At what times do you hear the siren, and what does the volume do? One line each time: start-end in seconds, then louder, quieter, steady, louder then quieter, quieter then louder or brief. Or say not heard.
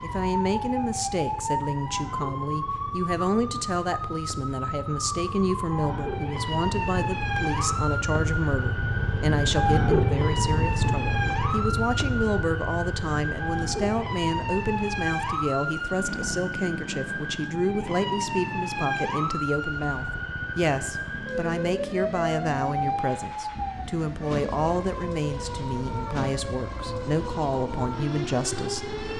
0.0-29.1 steady.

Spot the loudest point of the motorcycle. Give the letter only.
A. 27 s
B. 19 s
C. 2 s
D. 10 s
D.